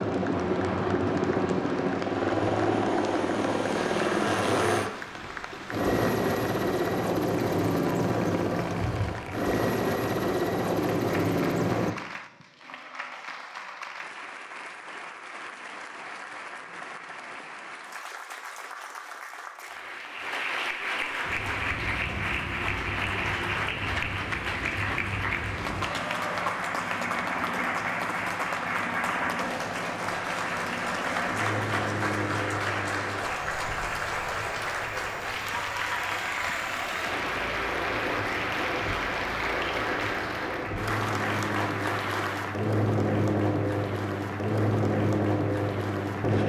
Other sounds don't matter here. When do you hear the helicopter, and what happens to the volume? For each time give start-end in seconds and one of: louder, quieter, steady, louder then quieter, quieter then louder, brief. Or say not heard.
0.0-11.9 steady
21.2-46.4 louder.